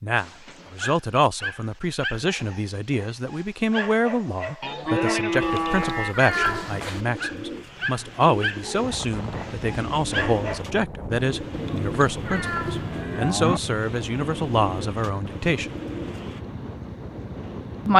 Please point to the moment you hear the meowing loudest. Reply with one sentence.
The volume of the meowing peaks at 6 seconds.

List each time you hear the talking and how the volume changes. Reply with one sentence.
The talking can be heard from 0.0 to 15.7 s, at a steady volume.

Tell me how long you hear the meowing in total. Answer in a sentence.
The meowing can be heard for 3 seconds in total.